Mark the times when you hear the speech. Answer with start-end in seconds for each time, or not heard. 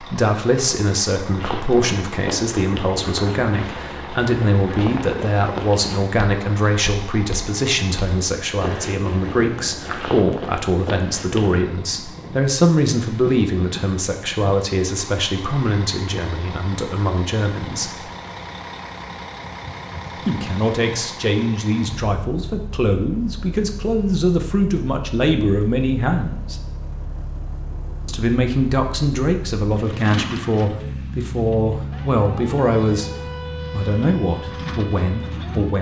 0.0-18.1, 20.2-26.6, 28.1-33.1, 33.7-35.7.